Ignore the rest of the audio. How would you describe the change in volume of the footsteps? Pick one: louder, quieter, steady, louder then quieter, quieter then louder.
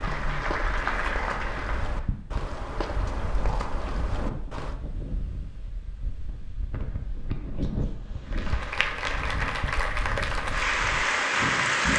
steady.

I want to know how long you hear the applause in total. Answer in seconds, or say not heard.
6 s.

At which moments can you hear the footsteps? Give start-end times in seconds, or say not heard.
0.0-4.8.